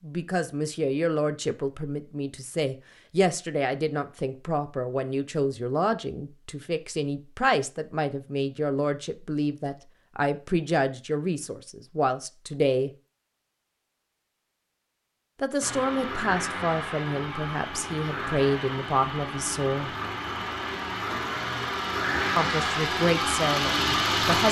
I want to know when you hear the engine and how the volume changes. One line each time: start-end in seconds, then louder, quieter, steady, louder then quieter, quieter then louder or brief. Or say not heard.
15.6-24.4 louder.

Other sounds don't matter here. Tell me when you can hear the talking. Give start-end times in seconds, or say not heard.
0.0-12.9, 15.4-19.9, 22.4-24.4.